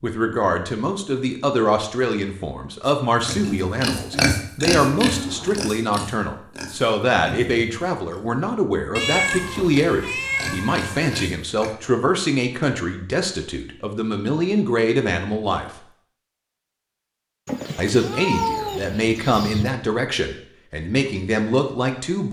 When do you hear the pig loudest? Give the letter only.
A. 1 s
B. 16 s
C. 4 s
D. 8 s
C.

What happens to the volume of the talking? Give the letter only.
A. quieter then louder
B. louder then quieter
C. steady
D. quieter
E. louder
C.